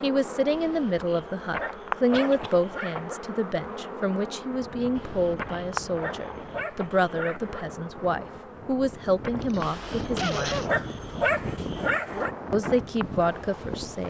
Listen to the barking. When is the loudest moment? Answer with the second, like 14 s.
11 s.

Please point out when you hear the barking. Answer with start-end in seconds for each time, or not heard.
0.5-3.2, 5.0-7.7, 9.6-12.3.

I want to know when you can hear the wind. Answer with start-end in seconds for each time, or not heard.
4.5-14.0.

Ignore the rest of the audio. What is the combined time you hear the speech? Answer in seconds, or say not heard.
12 s.